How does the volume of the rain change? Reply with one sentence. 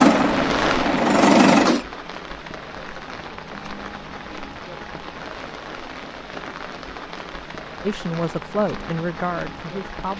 The loudness of the rain goes down.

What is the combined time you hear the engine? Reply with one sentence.
You can hear the engine for 2 seconds altogether.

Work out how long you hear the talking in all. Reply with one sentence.
The talking can be heard for 2 seconds in total.